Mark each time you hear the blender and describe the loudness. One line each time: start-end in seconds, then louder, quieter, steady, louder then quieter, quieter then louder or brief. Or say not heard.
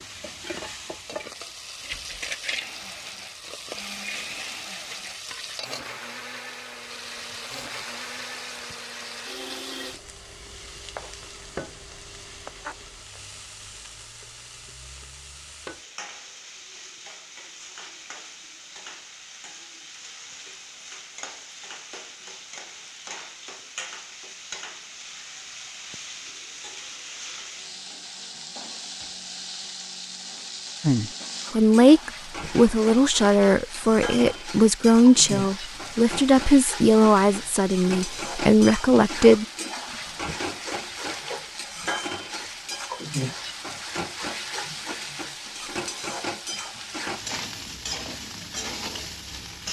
2.5-10.0 steady.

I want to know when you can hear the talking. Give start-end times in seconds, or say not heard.
30.8-39.5.